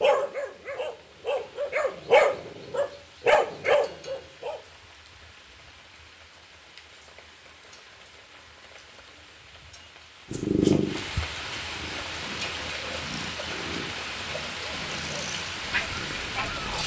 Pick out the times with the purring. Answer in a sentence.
The purring can be heard from 10.3 to 16.8 s.